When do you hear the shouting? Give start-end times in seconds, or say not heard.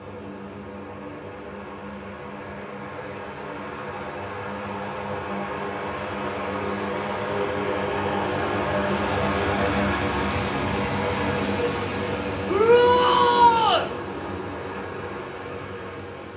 12.4-13.8.